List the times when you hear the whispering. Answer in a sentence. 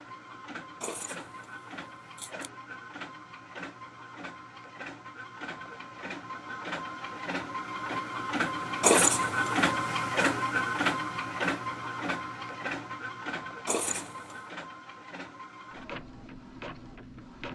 The whispering can't be heard in this clip.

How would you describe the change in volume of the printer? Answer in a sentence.
The volume of the printer goes up, then down.